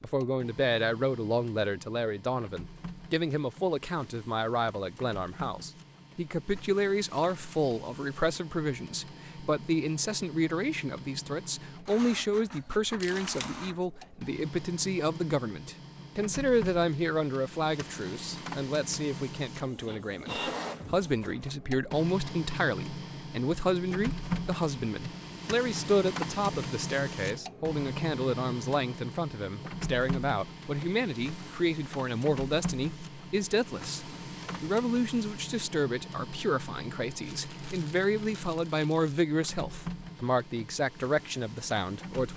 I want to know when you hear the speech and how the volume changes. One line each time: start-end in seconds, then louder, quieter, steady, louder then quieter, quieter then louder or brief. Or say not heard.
0.0-42.3 steady.